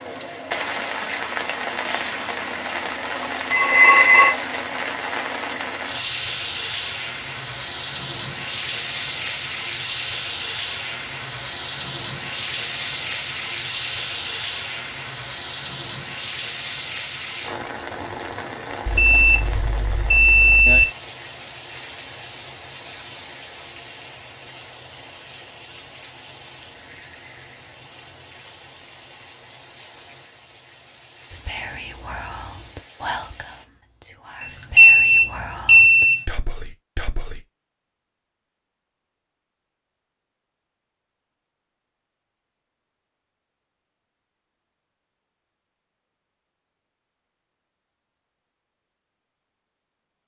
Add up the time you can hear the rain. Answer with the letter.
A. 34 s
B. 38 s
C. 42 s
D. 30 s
A.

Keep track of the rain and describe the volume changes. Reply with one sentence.
The volume of the rain goes down.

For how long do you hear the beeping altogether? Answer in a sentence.
You can hear the beeping for 4 seconds altogether.